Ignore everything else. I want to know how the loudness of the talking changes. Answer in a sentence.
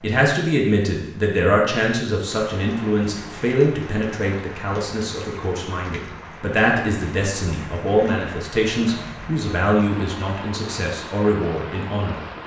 The loudness of the talking stays about the same.